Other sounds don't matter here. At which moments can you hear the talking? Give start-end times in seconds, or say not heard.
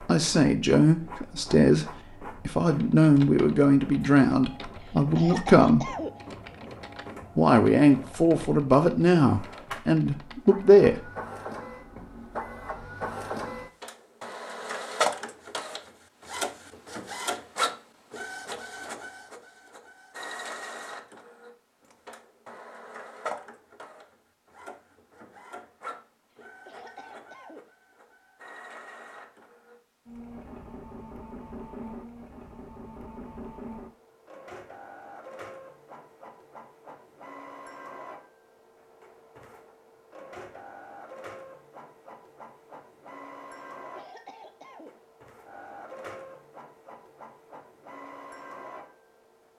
0.1-1.9, 2.5-5.9, 7.3-11.0.